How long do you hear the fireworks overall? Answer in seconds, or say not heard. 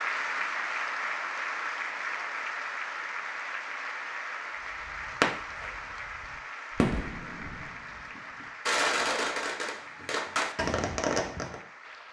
7 s.